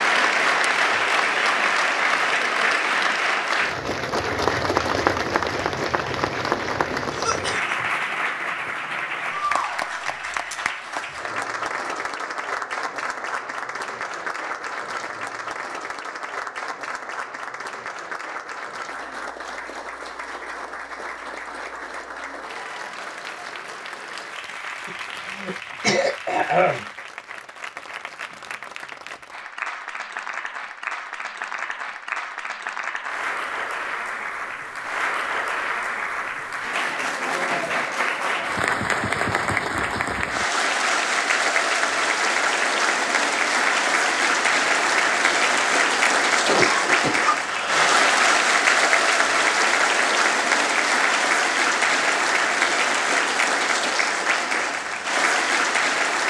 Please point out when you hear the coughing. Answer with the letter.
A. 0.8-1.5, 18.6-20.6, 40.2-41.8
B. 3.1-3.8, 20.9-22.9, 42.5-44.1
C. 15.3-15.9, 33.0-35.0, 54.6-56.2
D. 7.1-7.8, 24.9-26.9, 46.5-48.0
D.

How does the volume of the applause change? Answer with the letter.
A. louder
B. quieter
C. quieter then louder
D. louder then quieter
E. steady
C.